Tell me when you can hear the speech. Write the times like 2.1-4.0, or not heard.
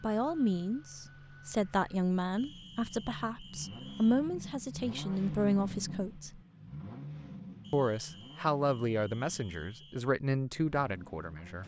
0.0-6.4, 7.7-11.6.